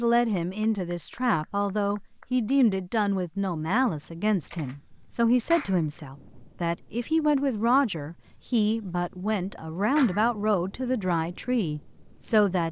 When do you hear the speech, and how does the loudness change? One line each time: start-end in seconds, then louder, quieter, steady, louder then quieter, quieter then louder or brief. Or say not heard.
0.0-12.6 steady.